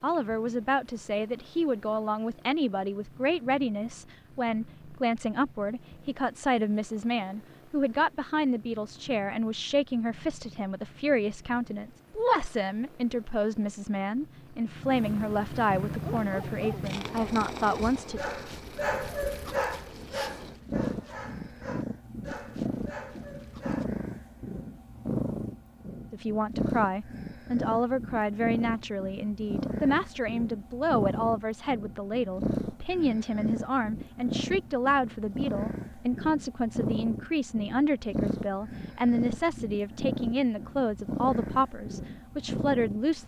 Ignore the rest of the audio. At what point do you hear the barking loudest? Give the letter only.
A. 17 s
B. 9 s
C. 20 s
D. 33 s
C.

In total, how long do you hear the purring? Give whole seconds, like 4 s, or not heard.
43 s.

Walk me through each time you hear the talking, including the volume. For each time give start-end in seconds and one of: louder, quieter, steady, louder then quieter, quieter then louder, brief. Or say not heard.
0.0-18.2 steady
26.1-43.2 steady.